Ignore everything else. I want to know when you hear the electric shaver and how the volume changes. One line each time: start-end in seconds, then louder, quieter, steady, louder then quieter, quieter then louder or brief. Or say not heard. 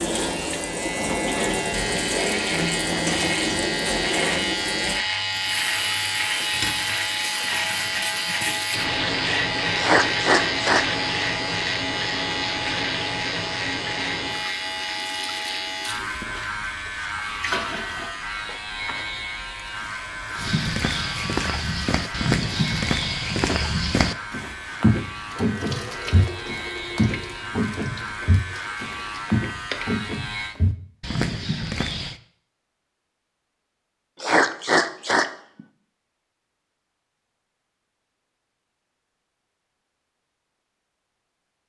0.0-30.6 quieter.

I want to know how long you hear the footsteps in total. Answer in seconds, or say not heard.
12 s.